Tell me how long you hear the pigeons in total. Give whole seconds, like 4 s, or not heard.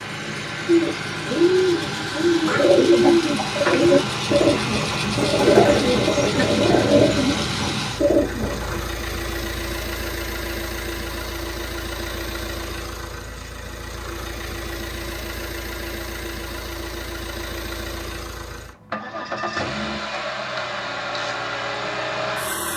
8 s.